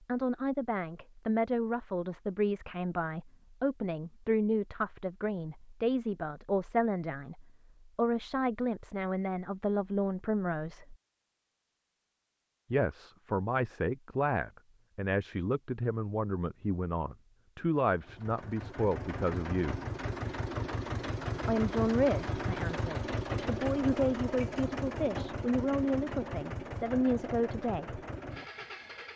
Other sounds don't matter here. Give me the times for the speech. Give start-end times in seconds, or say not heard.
0.1-10.9, 12.7-19.8, 21.4-28.0.